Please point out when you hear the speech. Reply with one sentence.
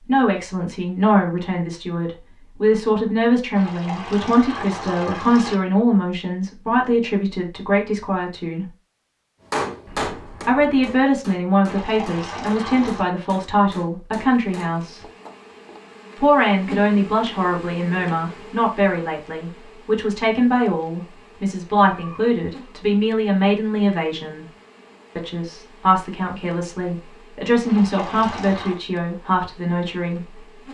You can hear the speech from 0.1 to 8.7 s, from 10.4 to 15.1 s, from 16.1 to 24.4 s and from 25.1 to 30.5 s.